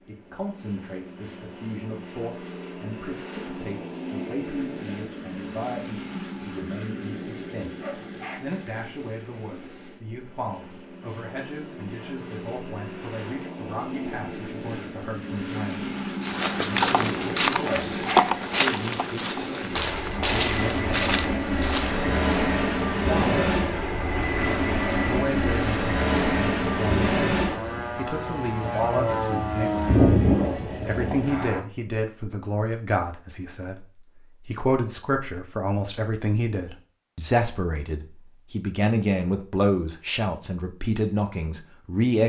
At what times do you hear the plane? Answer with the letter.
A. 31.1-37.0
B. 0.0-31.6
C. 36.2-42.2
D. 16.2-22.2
B.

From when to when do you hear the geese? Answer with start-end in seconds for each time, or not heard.
not heard.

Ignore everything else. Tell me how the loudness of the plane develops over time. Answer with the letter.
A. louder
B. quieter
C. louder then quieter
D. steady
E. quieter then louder
A.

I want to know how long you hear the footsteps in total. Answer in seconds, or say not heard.
6 s.